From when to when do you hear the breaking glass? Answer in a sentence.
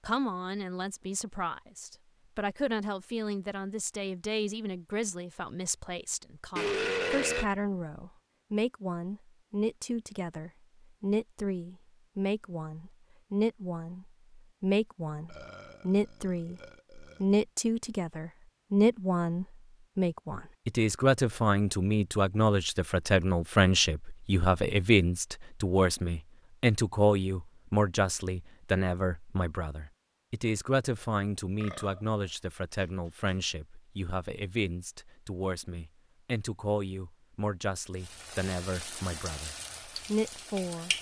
The breaking glass can't be heard in this clip.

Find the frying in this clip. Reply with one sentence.
You can hear the frying from 37.9 to 40.9 s.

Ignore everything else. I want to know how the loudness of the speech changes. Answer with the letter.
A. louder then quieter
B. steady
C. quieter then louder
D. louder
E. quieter
A.